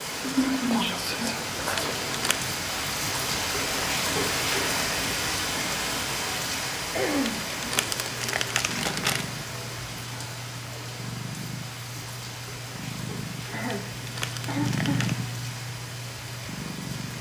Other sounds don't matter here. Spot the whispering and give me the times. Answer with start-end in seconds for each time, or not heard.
0.0-1.9.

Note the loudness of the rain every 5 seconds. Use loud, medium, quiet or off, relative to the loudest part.
loud, loud, medium, medium.